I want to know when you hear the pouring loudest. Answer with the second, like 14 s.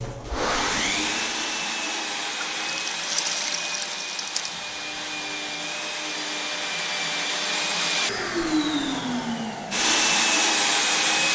3 s.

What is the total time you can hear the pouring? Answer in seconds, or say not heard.
2 s.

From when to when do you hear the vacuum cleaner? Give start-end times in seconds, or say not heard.
0.0-11.3.